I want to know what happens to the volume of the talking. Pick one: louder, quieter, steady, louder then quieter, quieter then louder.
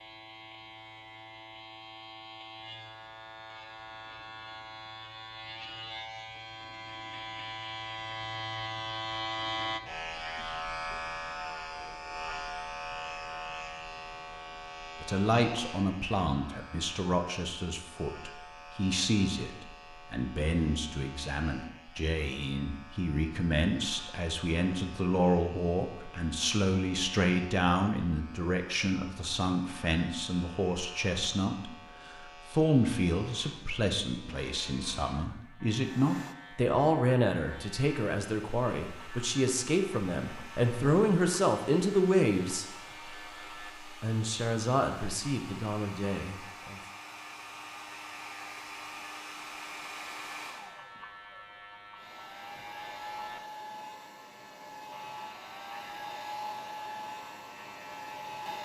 steady.